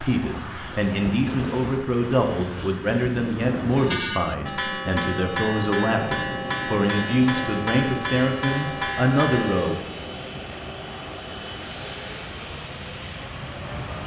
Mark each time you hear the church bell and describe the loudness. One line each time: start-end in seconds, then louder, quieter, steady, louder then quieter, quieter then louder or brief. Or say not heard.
3.8-9.8 steady.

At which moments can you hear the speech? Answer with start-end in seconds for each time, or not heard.
0.0-9.8.